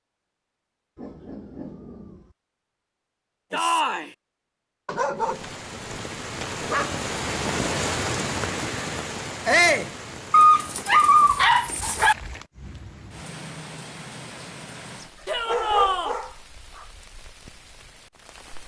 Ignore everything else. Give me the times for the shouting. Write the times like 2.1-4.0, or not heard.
3.5-4.1, 9.4-9.9, 15.2-16.1.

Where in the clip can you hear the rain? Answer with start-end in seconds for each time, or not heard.
5.2-18.6.